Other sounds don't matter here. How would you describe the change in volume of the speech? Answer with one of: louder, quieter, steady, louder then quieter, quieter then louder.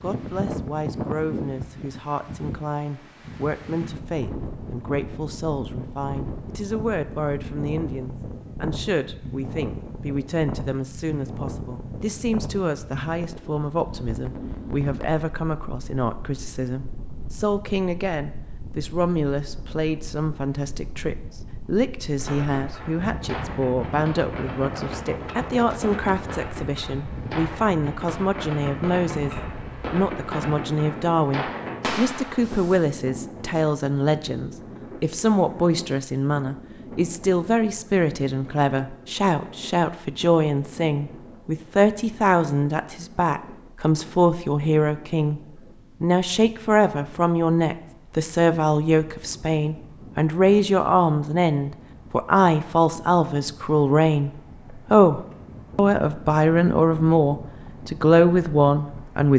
louder.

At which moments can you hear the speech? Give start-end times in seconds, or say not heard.
0.0-45.4, 46.0-59.3.